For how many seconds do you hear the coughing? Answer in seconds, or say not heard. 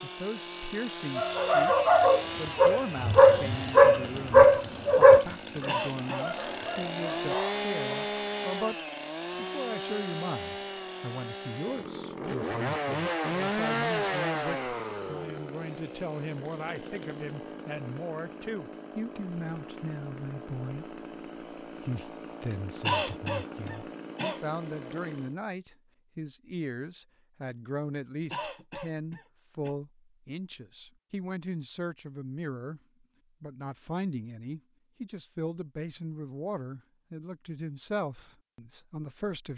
4 s.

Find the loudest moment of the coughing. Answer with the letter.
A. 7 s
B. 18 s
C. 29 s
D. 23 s
D.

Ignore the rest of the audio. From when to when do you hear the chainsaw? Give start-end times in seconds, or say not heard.
0.0-25.4.